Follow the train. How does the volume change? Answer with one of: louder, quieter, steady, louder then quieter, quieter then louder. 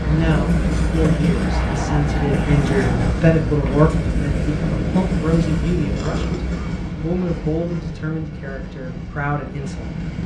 quieter.